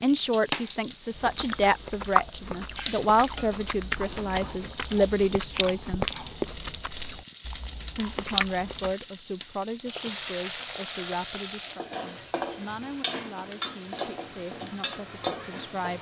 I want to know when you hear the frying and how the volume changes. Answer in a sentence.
You can hear the frying from 0.0 to 15.9 s, at a steady volume.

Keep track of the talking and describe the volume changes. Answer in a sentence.
The volume of the talking goes down.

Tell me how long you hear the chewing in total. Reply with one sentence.
The chewing can be heard for 8 seconds in total.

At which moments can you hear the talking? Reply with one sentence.
The talking can be heard from 0.0 to 6.0 s and from 8.0 to 15.9 s.